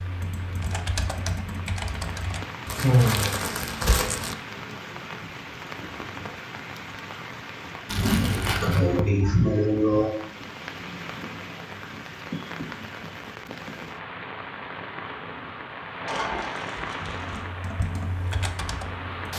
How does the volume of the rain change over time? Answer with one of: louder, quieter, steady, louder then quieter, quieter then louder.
steady.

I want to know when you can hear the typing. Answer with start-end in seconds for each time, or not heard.
0.0-2.5, 17.1-19.3.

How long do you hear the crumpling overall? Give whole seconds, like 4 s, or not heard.
4 s.